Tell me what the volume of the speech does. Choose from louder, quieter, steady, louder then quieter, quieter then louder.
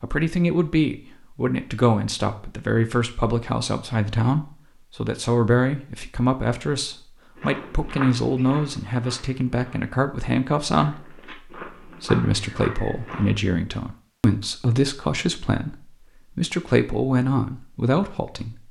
steady.